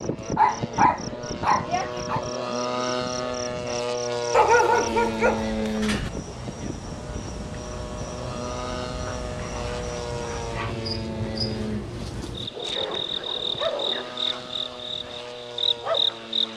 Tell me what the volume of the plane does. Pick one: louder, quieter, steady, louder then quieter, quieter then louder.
quieter.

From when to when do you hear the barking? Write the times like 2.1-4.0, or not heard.
0.3-2.2, 4.3-6.1, 9.1-10.8, 12.5-14.2.